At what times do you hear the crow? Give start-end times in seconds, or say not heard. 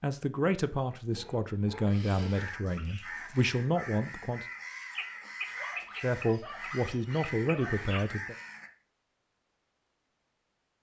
2.2-8.7.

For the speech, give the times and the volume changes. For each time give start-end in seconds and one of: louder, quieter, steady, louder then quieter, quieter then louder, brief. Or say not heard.
0.0-4.5 quieter then louder
6.0-8.3 brief.